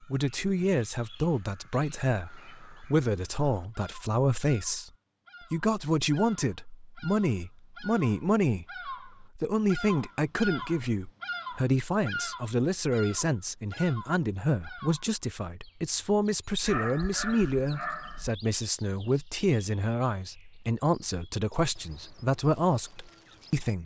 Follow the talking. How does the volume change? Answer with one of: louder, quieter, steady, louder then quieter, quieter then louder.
steady.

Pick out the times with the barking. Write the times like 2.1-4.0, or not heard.
16.6-18.3.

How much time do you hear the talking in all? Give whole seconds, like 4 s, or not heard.
23 s.